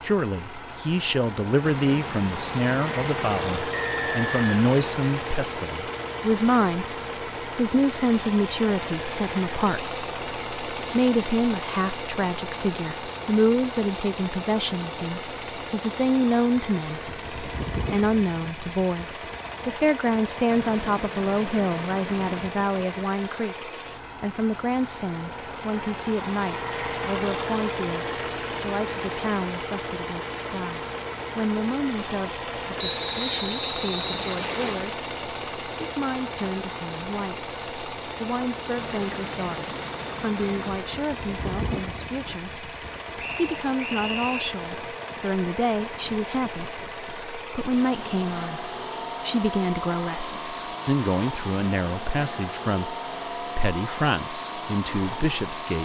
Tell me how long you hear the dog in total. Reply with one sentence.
The dog can't be heard in this clip.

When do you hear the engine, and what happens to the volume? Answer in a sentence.
You can hear the engine from 0.0 to 55.7 s, at a steady volume.